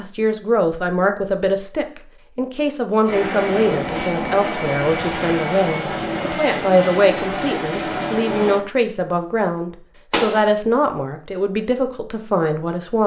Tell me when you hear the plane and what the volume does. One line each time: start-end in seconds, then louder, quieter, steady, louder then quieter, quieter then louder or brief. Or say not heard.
3.0-8.6 steady.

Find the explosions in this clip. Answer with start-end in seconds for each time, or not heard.
10.1-10.5.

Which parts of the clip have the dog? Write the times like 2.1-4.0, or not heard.
not heard.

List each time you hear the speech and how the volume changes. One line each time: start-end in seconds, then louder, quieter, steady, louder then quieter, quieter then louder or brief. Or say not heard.
0.0-13.0 steady.